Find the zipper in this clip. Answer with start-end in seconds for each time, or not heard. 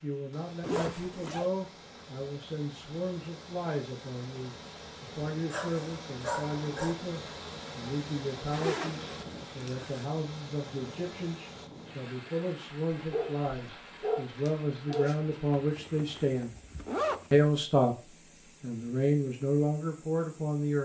0.6-1.5, 8.5-10.1, 15.6-17.3.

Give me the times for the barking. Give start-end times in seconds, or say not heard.
5.5-7.0, 12.9-15.4.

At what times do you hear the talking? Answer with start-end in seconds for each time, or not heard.
0.0-16.6, 17.3-20.7.